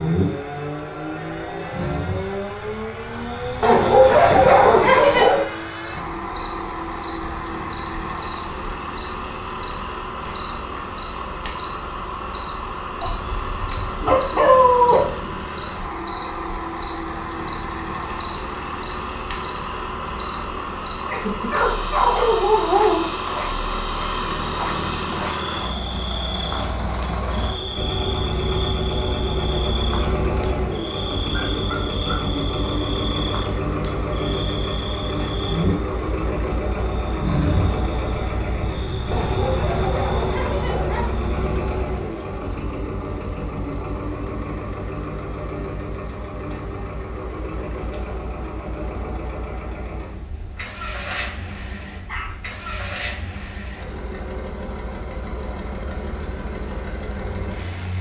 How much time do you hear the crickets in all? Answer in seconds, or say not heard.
58 s.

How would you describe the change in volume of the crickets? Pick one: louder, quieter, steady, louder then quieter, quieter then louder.
steady.